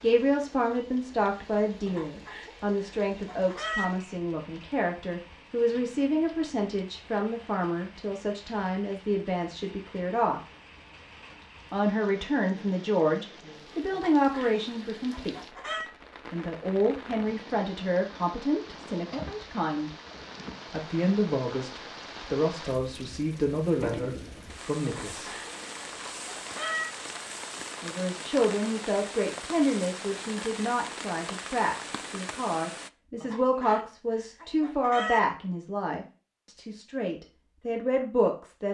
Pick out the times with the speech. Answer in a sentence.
The speech can be heard from 0.0 to 10.4 s, from 11.7 to 19.9 s, from 20.6 to 25.3 s and from 27.8 to 38.6 s.